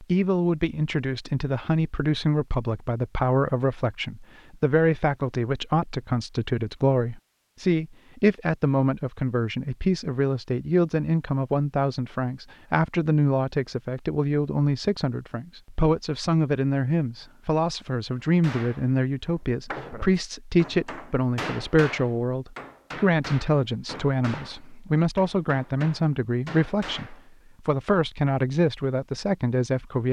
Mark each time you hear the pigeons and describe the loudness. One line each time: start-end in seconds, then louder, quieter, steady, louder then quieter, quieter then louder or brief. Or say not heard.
not heard.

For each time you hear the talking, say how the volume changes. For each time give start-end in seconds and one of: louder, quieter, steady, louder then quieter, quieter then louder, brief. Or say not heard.
0.0-30.0 steady.